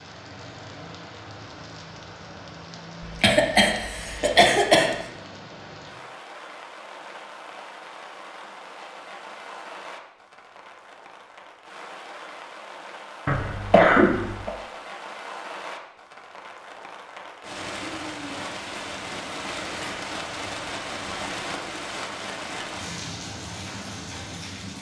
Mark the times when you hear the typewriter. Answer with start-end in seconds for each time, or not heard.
not heard.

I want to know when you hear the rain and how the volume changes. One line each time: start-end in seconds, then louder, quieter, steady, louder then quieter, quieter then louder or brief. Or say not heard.
0.0-24.7 louder.